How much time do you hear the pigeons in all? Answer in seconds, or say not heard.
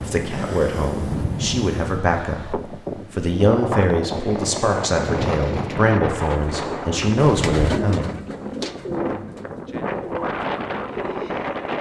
7 s.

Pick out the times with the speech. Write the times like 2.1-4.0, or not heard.
0.0-8.2.